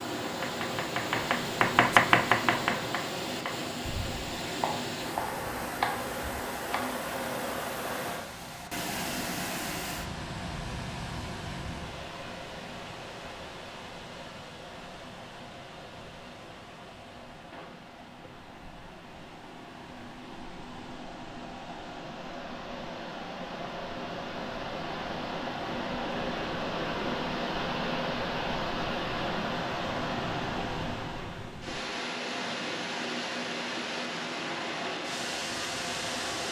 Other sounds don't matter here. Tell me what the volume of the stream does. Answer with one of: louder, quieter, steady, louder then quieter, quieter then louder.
quieter then louder.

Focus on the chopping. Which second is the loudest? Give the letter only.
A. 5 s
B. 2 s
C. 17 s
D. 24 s
B.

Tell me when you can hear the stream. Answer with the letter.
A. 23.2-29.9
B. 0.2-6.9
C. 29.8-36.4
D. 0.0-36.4
D.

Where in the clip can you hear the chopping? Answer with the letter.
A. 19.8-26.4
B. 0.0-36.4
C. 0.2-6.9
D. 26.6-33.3
C.